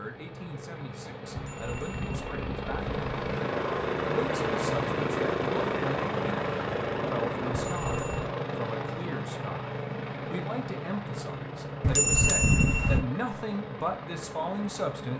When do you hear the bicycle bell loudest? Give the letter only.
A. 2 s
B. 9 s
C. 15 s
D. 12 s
D.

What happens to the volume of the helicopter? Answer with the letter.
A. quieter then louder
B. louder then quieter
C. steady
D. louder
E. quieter
B.